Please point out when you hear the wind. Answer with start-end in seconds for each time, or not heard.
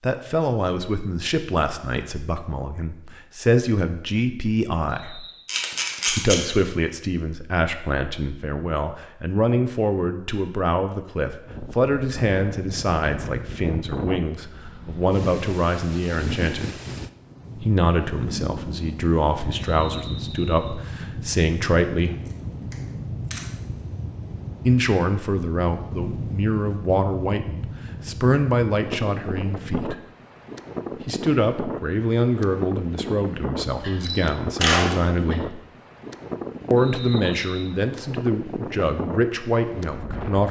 11.4-40.4.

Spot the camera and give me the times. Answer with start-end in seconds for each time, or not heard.
5.5-6.3, 22.2-23.4, 33.7-35.4.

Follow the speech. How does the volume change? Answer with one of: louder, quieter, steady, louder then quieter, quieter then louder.
steady.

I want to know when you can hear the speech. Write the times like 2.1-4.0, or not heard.
0.0-5.2, 6.0-16.8, 17.6-22.1, 24.6-29.9, 31.1-35.5, 36.7-40.4.